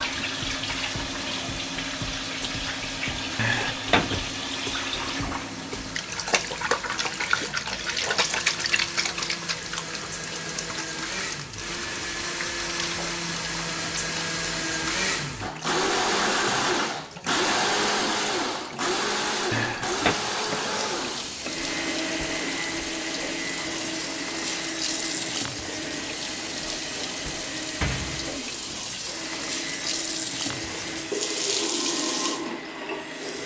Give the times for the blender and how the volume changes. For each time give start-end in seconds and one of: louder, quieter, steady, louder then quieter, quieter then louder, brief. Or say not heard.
0.0-33.4 louder then quieter.